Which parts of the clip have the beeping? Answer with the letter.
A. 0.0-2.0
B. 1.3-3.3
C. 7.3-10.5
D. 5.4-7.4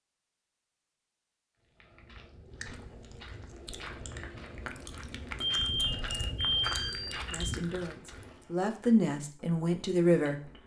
D.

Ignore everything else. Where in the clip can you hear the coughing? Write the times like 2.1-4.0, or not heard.
not heard.